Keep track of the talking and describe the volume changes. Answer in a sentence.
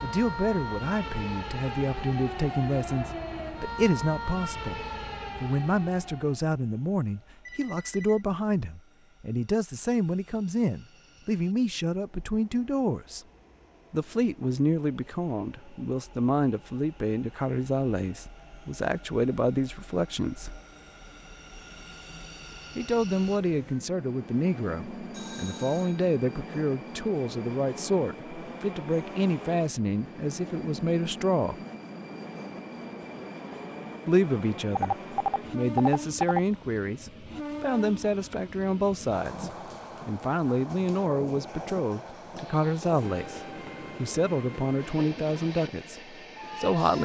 The loudness of the talking stays about the same.